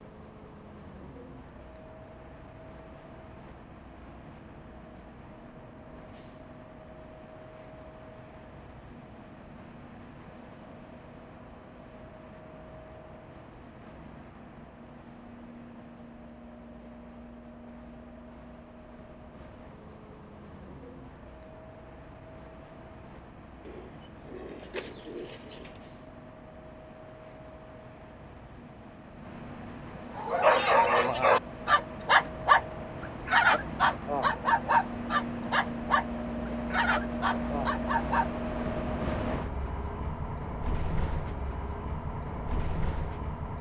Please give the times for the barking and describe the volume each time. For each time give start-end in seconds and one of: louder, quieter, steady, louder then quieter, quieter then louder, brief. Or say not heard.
30.1-38.3 quieter.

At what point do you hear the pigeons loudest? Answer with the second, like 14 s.
25 s.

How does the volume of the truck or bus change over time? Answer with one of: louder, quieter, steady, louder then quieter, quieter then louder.
louder.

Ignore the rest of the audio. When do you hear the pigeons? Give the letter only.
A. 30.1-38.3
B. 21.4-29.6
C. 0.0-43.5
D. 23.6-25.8
D.